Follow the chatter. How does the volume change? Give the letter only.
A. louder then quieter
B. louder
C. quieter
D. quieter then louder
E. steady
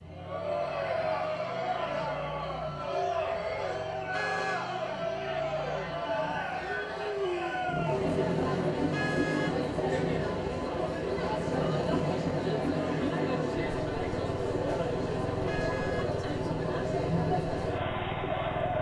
E.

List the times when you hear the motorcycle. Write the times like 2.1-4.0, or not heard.
0.0-18.7.